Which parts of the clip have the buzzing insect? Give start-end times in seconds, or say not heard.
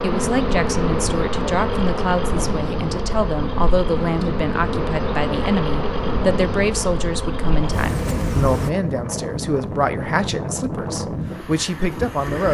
0.0-8.7.